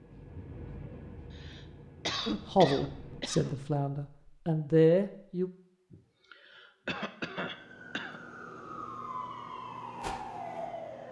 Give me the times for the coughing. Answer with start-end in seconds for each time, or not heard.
1.3-3.6, 5.9-8.2.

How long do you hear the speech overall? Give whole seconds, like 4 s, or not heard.
3 s.